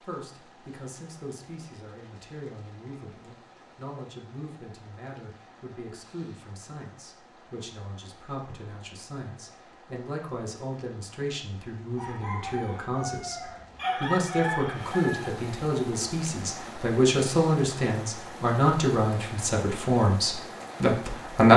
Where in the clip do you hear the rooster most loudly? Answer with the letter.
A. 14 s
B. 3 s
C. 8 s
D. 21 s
A.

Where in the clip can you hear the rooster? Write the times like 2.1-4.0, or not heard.
11.9-15.4.